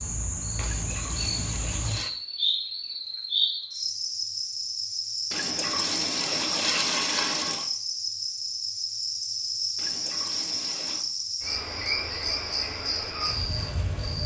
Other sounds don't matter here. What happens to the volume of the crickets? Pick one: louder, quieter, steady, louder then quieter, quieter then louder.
steady.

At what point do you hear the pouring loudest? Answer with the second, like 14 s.
7 s.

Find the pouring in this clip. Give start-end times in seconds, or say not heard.
0.6-2.1, 5.3-7.7, 9.8-11.1.